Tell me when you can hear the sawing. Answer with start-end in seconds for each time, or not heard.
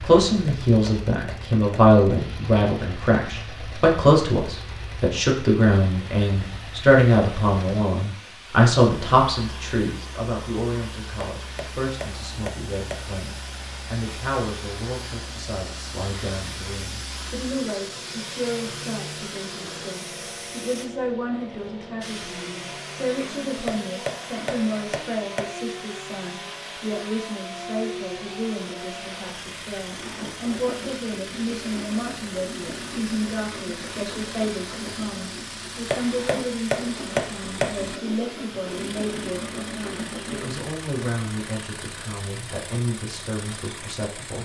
29.8-40.6.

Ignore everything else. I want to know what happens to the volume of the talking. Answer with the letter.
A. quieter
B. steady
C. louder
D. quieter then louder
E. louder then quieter
A.